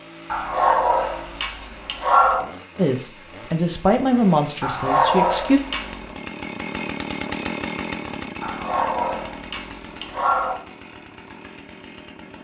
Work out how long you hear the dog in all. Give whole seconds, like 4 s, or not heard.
6 s.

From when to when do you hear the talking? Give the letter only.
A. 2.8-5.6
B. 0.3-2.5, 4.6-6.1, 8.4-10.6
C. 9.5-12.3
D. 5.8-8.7
A.